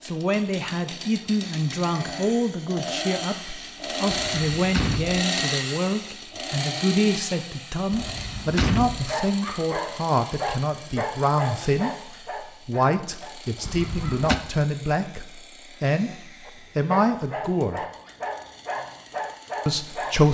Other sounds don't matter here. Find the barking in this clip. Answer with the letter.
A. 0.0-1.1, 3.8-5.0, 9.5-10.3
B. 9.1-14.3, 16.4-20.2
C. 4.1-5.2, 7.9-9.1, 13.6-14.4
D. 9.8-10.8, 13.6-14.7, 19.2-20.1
B.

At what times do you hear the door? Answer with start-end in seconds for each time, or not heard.
4.1-5.2, 7.9-9.1, 13.6-14.4.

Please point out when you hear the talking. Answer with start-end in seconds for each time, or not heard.
0.0-16.1, 16.8-17.9, 19.6-20.2.